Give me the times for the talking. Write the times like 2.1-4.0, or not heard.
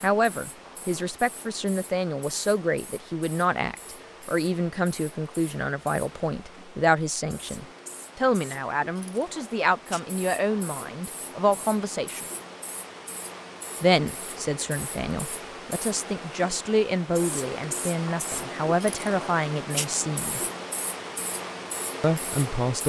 0.0-12.2, 13.8-20.4, 22.0-22.8.